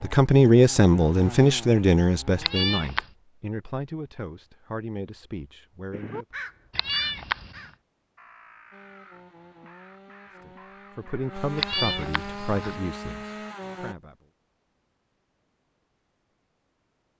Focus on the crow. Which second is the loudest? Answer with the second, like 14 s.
6 s.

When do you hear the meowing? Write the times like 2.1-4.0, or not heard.
2.4-3.1, 6.7-7.7, 11.6-12.8.